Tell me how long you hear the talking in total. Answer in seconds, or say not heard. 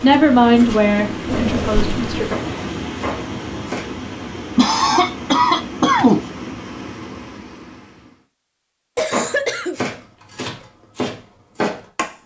2 s.